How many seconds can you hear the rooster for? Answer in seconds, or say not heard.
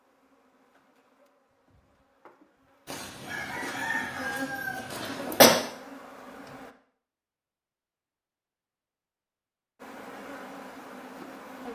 3 s.